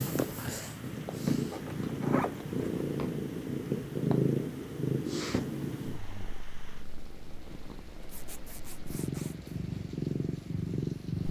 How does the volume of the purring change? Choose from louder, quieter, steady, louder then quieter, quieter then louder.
quieter then louder.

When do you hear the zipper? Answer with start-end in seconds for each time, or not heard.
1.5-2.9, 8.1-9.5.